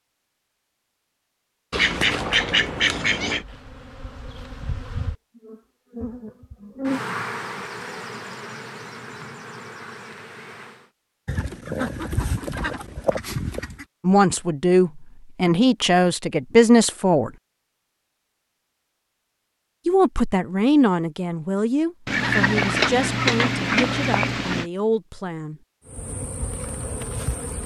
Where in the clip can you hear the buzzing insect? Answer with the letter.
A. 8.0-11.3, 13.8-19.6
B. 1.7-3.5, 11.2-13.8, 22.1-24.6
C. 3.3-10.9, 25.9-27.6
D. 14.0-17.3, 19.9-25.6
C.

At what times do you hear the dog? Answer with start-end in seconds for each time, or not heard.
not heard.